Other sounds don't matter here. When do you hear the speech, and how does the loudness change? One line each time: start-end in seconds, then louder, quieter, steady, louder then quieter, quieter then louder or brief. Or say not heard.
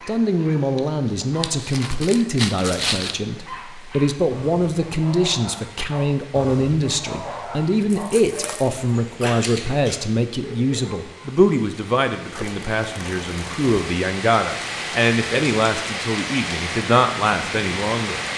0.1-18.3 steady.